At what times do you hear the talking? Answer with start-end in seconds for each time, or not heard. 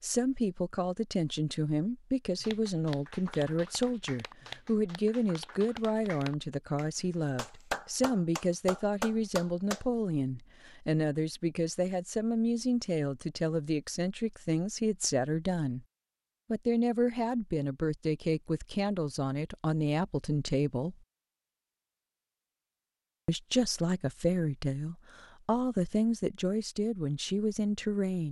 0.0-15.8, 16.5-20.9, 23.2-28.2.